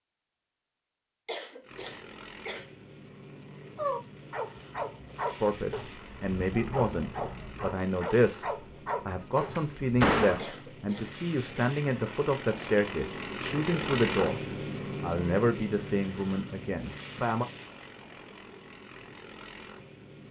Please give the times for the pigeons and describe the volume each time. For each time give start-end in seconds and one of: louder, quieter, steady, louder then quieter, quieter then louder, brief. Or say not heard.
not heard.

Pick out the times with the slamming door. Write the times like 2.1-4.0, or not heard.
9.3-10.6.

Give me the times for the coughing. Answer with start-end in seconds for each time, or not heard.
1.2-2.8, 10.3-11.7.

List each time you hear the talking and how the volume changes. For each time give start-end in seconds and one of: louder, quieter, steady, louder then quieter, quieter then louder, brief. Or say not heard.
5.4-14.4 steady
15.0-17.4 brief.